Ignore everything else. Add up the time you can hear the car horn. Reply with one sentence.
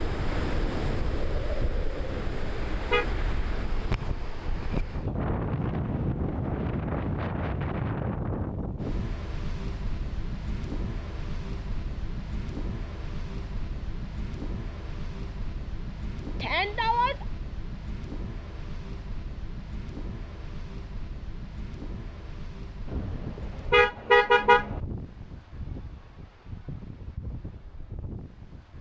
The car horn can be heard for 3 seconds in total.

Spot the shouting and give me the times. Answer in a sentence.
The shouting can be heard from 16.4 to 17.2 s.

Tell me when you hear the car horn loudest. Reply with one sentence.
The volume of the car horn peaks at 24 seconds.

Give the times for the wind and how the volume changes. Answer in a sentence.
You can hear the wind from 0.0 to 28.7 s, getting quieter.